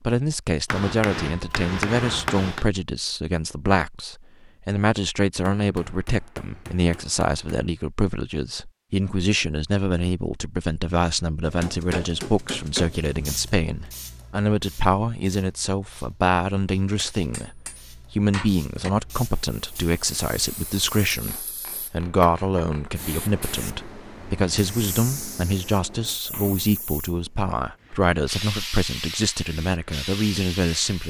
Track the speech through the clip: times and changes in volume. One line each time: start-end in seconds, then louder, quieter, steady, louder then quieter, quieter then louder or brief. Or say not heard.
0.0-31.0 steady.